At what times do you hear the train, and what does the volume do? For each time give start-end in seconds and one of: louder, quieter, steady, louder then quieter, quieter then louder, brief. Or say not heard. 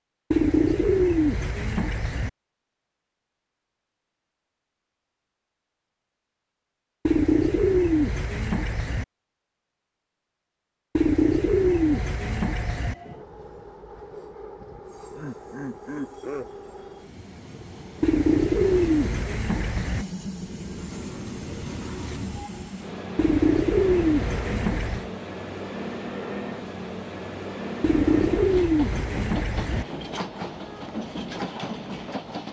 11.7-32.4 louder.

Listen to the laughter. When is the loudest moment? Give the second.
16 s.